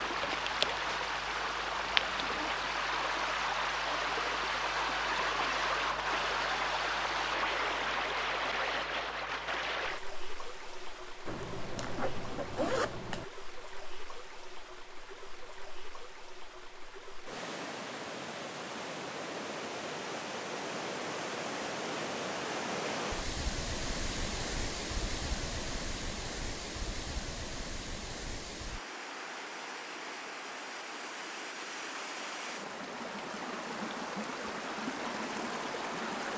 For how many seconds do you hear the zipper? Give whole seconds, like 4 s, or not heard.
2 s.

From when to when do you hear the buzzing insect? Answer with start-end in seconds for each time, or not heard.
0.0-2.4.